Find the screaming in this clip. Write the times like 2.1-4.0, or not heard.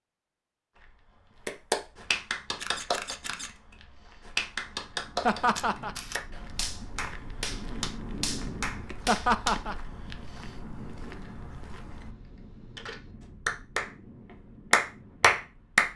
not heard.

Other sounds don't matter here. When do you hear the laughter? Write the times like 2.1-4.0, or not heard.
5.2-6.0, 9.1-9.8.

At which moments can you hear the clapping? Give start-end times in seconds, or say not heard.
1.4-9.6, 13.4-13.9, 14.7-15.8.